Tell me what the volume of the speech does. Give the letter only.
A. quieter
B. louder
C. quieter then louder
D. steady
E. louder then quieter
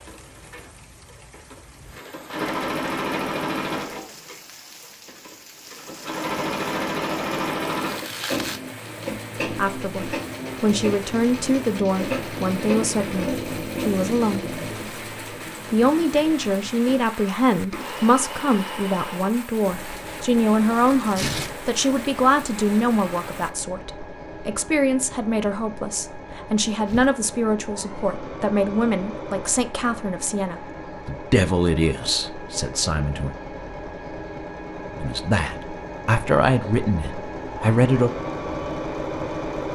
D.